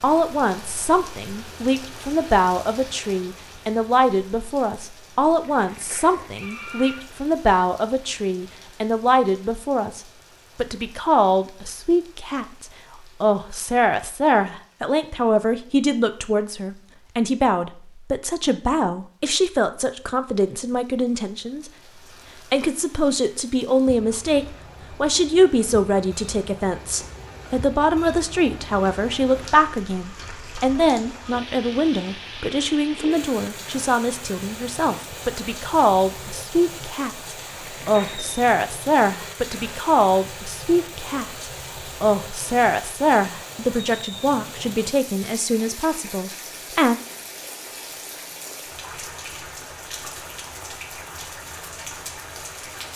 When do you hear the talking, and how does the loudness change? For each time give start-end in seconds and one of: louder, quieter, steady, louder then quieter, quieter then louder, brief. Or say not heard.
0.0-21.7 steady
22.4-47.0 steady.